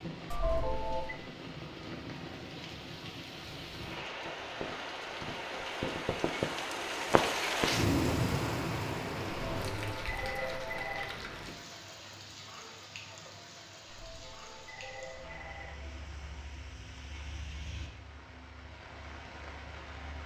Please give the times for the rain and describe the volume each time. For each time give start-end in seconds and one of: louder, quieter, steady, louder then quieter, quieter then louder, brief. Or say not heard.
0.0-20.2 louder then quieter.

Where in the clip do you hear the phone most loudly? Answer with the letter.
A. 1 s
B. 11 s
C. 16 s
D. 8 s
A.